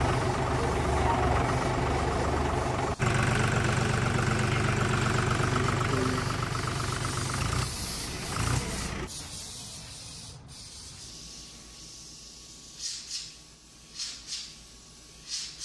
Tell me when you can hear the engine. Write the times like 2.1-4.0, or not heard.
0.0-9.1.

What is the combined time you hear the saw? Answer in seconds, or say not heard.
not heard.